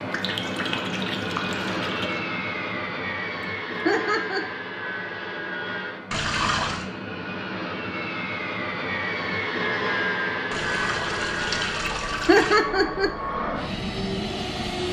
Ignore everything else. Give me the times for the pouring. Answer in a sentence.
The pouring can be heard from 0.1 to 2.2 s, from 6.1 to 6.8 s and from 10.5 to 12.6 s.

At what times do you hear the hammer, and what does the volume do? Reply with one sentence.
The hammer can't be heard in this clip.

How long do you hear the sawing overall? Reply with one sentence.
The sawing can't be heard in this clip.